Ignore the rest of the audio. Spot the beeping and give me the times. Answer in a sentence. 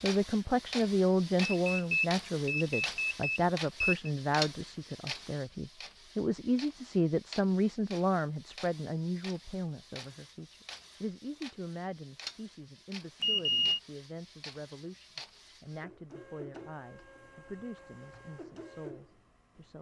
You can hear the beeping from 1.4 to 4.1 s and from 13.2 to 13.8 s.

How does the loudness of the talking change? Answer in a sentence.
The loudness of the talking goes down.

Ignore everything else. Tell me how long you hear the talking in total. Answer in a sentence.
The talking can be heard for 20 seconds in total.